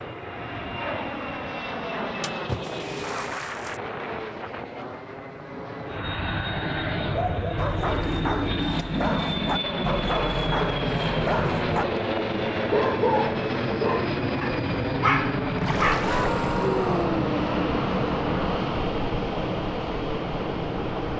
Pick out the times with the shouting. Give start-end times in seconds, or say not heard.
15.9-17.0.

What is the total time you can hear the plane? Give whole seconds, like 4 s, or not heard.
21 s.